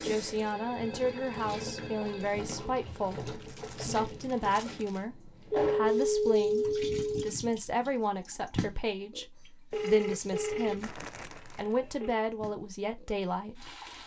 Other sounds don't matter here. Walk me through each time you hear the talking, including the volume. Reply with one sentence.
The talking can be heard from 0.0 to 13.7 s, at a steady volume.